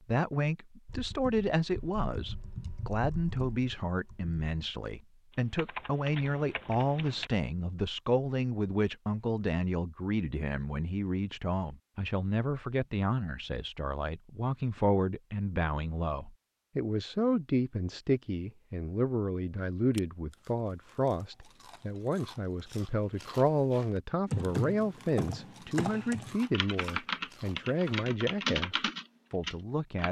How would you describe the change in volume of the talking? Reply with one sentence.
The loudness of the talking stays about the same.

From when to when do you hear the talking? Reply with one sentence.
The talking can be heard from 0.1 to 30.0 s.